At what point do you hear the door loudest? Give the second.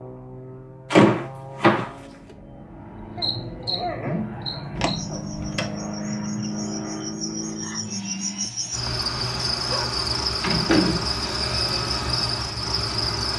1 s.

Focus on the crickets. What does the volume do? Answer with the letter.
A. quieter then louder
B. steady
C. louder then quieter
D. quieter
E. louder
A.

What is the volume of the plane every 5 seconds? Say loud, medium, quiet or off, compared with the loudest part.
medium, loud, medium.